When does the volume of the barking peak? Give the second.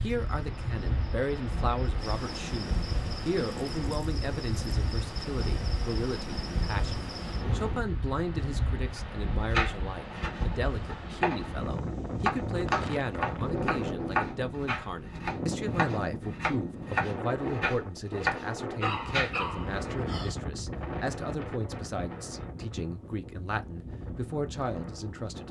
19 s.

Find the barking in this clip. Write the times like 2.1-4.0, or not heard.
18.8-20.4.